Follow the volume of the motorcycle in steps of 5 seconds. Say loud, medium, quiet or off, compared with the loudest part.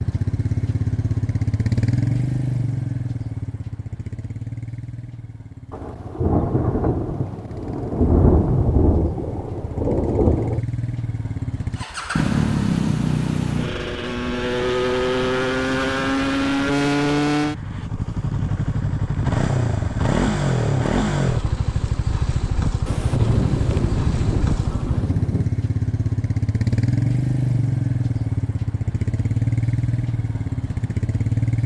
loud, quiet, loud, loud, loud, loud, loud.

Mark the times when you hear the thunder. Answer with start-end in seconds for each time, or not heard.
5.7-10.6, 22.9-25.5.